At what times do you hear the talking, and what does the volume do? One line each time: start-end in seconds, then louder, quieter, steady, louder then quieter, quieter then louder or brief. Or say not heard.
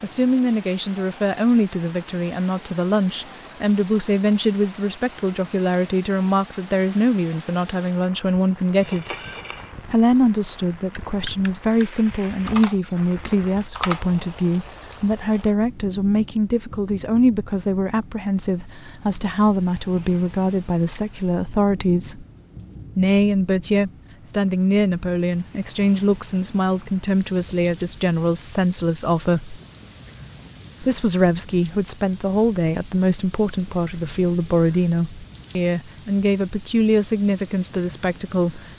0.0-9.1 steady
9.8-22.2 steady
22.9-29.6 steady
30.8-38.6 steady.